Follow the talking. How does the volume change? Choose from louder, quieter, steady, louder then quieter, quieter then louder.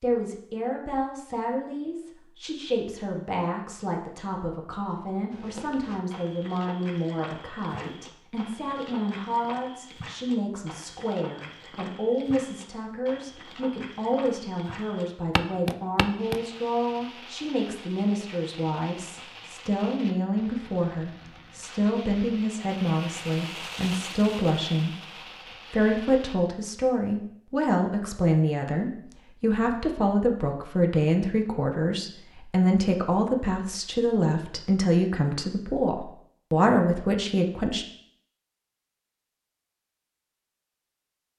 louder.